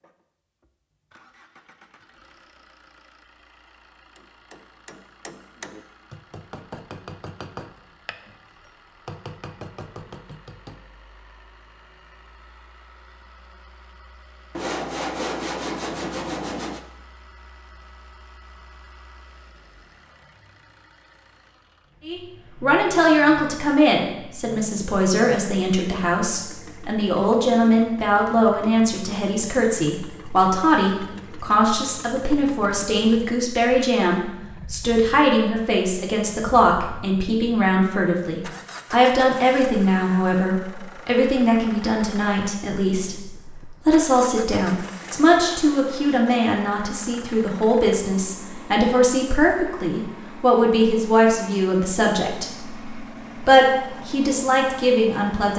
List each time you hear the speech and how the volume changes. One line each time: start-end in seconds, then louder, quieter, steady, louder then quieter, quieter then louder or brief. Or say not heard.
22.1-55.5 steady.